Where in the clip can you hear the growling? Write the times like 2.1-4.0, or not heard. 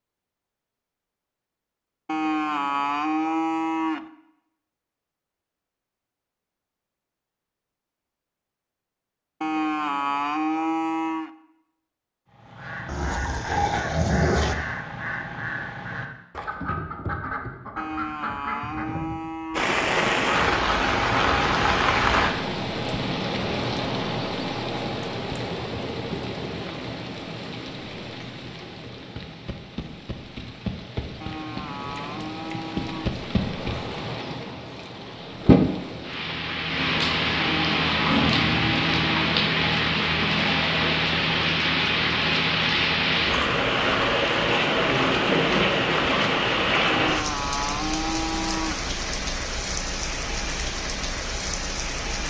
12.8-14.6, 38.0-38.8.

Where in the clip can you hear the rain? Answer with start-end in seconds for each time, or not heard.
19.6-52.2.